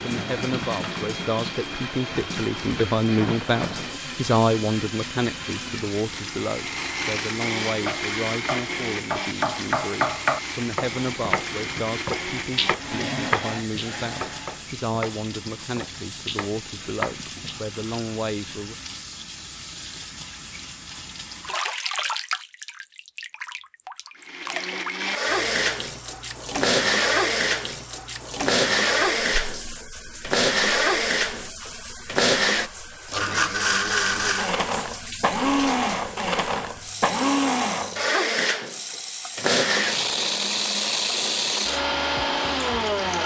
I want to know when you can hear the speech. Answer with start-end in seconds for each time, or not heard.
0.0-18.8.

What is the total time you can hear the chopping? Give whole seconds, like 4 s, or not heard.
10 s.